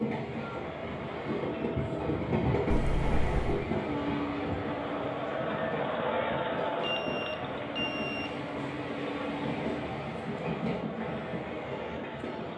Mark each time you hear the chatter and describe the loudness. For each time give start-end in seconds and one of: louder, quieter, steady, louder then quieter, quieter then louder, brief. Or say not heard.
0.2-12.5 louder then quieter.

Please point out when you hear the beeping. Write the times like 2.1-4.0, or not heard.
2.7-3.6, 6.8-8.4.